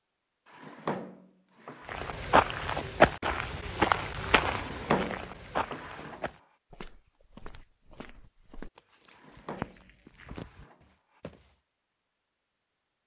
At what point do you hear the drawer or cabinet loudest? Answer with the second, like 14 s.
5 s.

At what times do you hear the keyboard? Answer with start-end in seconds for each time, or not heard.
not heard.